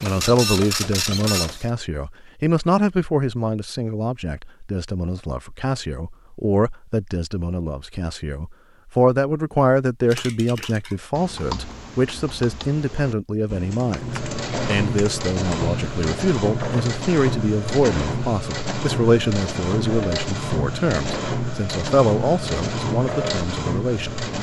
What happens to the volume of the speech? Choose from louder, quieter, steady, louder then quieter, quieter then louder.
steady.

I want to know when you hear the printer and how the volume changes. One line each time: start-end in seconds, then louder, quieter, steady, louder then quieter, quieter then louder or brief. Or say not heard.
0.0-1.7 brief
13.9-24.3 steady.